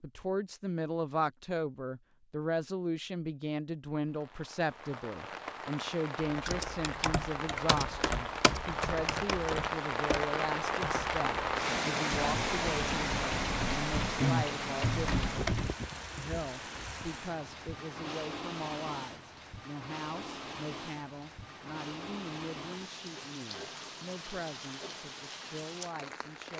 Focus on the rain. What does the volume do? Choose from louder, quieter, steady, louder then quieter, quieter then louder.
louder then quieter.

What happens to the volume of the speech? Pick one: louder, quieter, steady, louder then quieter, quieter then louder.
quieter.